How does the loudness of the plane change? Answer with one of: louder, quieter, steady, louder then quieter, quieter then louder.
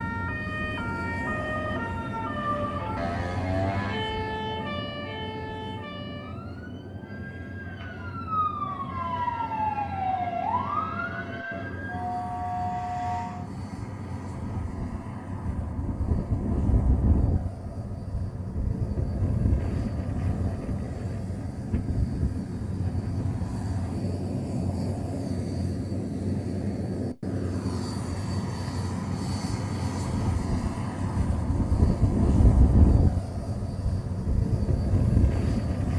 louder.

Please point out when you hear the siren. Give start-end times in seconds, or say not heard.
0.0-13.4.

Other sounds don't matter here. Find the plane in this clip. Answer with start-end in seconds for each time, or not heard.
0.0-35.9.